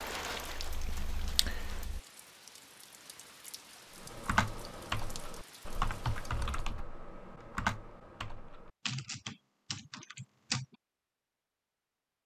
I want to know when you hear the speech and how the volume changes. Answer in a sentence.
The speech can't be heard in this clip.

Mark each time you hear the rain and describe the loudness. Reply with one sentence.
You can hear the rain from 0.0 to 6.8 s, getting quieter.